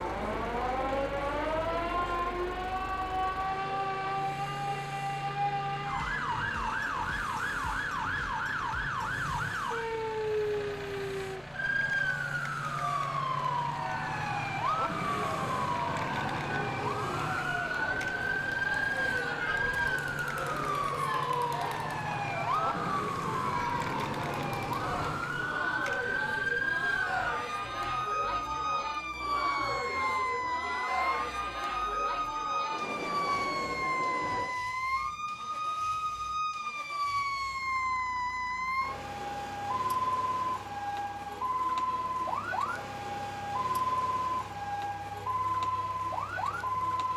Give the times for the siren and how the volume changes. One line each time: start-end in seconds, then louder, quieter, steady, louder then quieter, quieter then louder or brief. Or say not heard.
0.0-47.1 steady.